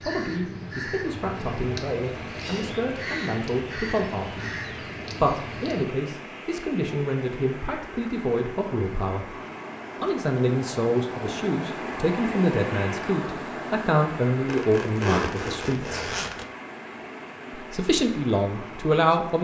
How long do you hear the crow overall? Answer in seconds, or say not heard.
6 s.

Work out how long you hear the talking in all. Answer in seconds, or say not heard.
17 s.